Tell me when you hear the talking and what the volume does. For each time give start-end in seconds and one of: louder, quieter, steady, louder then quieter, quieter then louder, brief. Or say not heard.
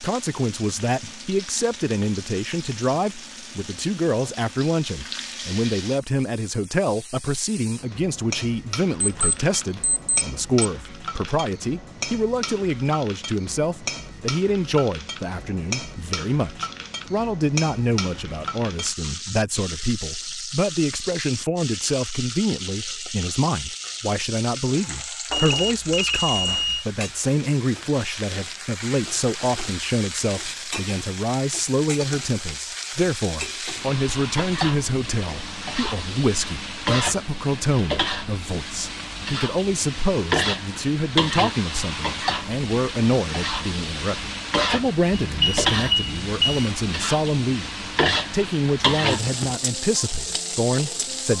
0.0-51.3 steady.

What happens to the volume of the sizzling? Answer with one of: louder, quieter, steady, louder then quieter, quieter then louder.
louder.